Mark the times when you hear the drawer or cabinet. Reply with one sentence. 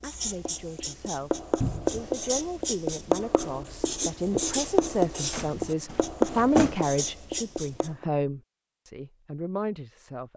The drawer or cabinet can be heard from 1.6 to 2.1 s and from 5.3 to 6.8 s.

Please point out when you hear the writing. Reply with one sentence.
You can hear the writing from 0.0 to 8.1 s.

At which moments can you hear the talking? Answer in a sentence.
You can hear the talking from 0.0 to 10.3 s.